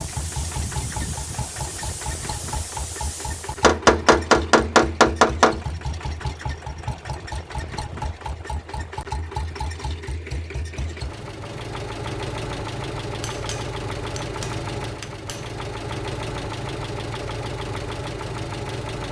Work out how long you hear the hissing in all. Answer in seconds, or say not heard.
4 s.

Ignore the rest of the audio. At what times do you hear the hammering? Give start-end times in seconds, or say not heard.
3.6-5.6, 13.2-15.5.